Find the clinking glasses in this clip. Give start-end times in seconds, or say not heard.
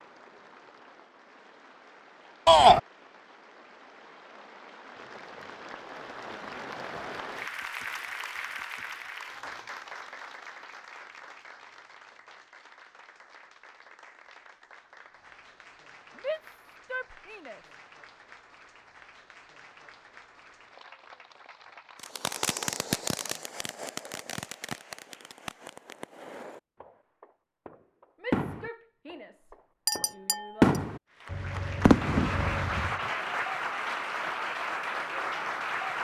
29.9-30.8.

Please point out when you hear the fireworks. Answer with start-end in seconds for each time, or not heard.
22.0-33.0.